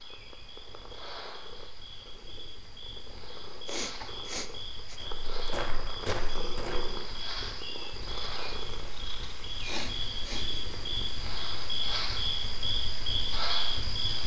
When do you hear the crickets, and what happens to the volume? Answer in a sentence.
You can hear the crickets from 0.0 to 14.2 s, getting louder.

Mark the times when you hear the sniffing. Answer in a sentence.
The sniffing can be heard from 3.6 to 5.0 s and from 9.6 to 10.6 s.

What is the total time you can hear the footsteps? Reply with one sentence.
The footsteps can be heard for 2 seconds in total.